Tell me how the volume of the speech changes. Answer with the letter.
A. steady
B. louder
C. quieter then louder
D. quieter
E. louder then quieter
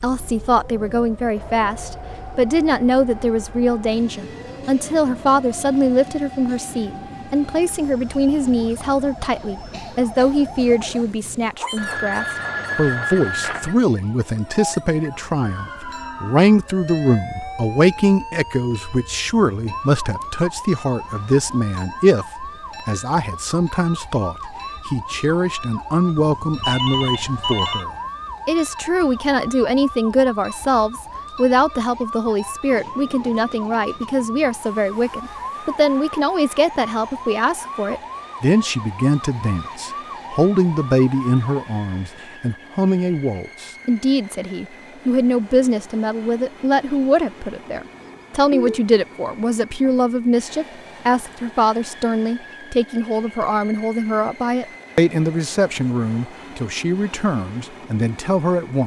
A.